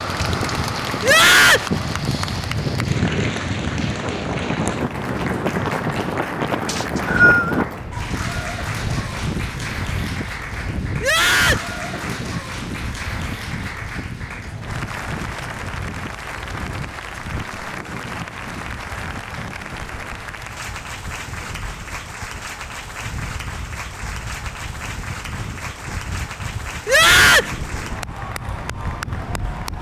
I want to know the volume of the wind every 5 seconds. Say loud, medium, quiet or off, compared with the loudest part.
loud, loud, medium, medium, quiet, medium.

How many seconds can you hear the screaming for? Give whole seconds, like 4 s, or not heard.
2 s.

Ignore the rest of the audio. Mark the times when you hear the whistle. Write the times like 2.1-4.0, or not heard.
6.7-7.7.